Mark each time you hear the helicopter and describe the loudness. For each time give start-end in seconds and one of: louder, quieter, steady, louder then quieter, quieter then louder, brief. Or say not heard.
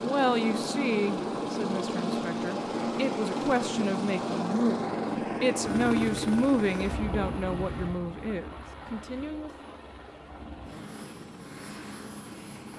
0.0-12.7 quieter.